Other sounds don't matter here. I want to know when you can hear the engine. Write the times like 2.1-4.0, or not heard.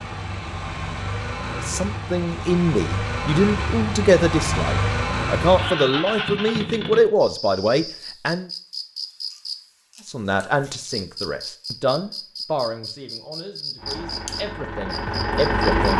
0.0-7.0, 13.8-15.9.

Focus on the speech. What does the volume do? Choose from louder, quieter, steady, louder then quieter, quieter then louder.
quieter.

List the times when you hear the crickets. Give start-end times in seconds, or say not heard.
7.2-15.9.